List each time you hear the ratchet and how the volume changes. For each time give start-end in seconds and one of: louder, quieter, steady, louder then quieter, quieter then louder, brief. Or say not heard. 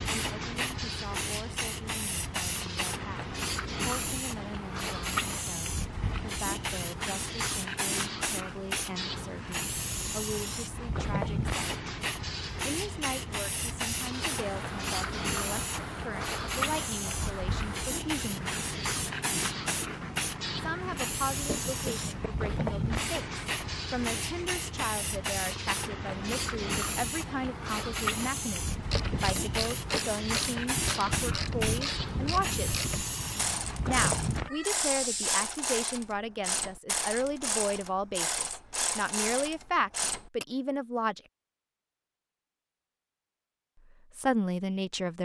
28.8-40.5 steady.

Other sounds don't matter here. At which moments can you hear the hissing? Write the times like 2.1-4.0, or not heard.
0.0-35.5.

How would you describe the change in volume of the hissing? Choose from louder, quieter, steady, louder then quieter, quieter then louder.
steady.